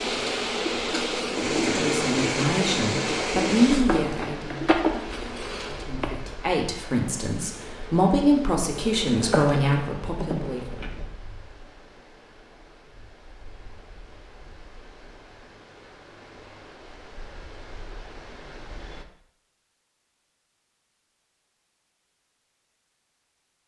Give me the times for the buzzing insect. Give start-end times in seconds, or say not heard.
0.0-6.1, 7.5-11.1.